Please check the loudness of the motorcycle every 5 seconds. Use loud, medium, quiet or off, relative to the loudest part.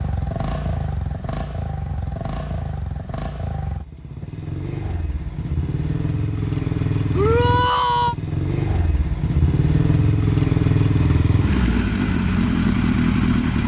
medium, medium, loud.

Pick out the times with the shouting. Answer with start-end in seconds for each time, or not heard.
7.1-8.2.